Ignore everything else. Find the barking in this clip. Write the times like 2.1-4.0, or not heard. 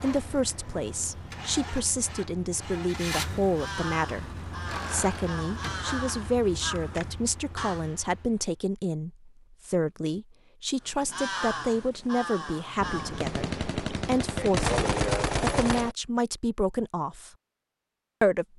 not heard.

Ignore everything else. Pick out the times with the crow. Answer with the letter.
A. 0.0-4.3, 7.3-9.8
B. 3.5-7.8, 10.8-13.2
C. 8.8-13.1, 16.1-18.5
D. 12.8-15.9
B.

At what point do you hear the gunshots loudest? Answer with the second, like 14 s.
15 s.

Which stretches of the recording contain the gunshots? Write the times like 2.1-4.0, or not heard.
12.8-15.9.